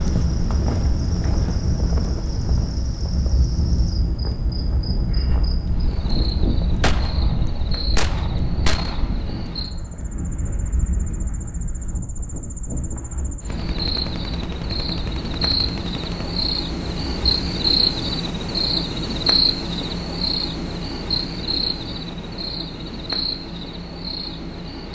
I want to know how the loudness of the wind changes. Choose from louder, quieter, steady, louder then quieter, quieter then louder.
quieter.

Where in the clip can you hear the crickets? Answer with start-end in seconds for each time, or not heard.
0.0-24.9.